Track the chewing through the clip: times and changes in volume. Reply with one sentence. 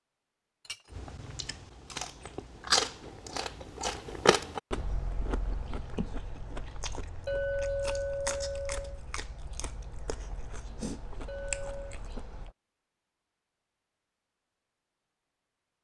The chewing can be heard from 0.9 to 12.5 s, getting quieter.